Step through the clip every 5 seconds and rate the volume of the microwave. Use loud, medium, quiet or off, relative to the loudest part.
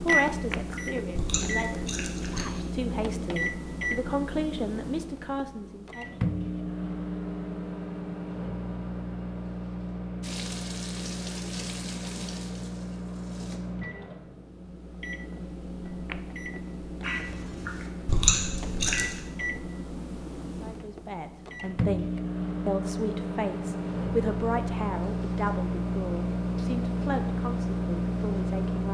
loud, medium, medium, medium, loud, loud.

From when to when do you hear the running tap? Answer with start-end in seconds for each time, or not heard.
10.2-13.6.